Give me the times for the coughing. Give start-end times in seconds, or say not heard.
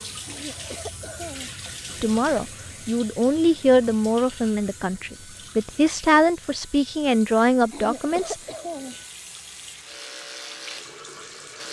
0.2-1.6, 7.7-9.1.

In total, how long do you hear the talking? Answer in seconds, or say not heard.
6 s.